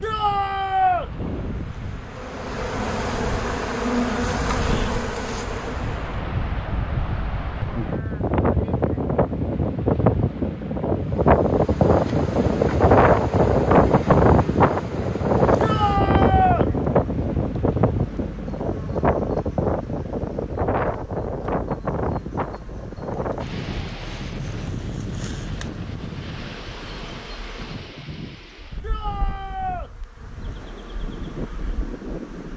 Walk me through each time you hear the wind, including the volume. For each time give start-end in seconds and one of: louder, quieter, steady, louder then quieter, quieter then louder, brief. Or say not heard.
0.0-32.5 louder then quieter.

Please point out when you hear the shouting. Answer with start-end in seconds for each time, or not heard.
0.0-1.1, 15.6-16.6, 28.8-29.9.